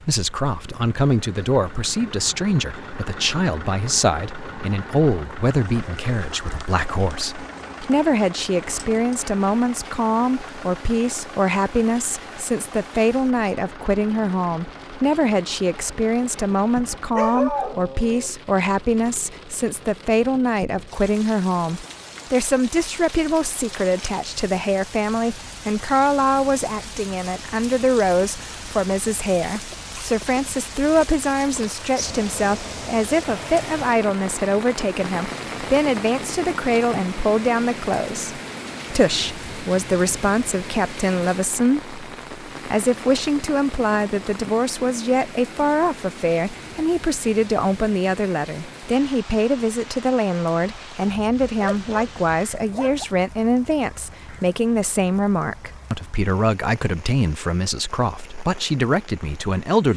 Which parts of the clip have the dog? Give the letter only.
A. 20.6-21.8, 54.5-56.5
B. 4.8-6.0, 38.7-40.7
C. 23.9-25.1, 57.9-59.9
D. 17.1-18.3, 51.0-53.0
D.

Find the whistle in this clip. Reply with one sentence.
You can't hear the whistle here.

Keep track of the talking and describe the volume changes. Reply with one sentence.
The loudness of the talking stays about the same.